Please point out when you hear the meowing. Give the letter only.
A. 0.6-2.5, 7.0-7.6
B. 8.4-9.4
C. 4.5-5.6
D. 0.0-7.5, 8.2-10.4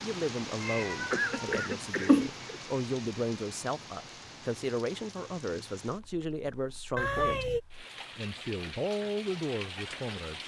A.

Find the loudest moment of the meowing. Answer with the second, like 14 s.
2 s.